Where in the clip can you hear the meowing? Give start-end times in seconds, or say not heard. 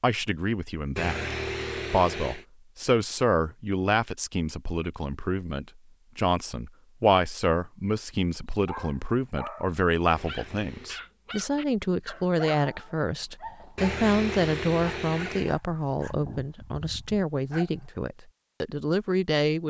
0.9-2.5, 10.1-11.0, 13.8-15.6.